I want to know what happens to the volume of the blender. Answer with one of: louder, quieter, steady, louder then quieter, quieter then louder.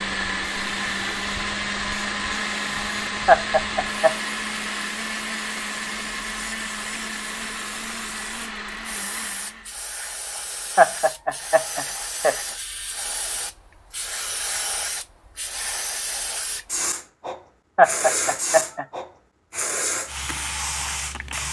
quieter.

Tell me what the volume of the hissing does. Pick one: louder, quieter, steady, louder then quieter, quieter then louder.
louder.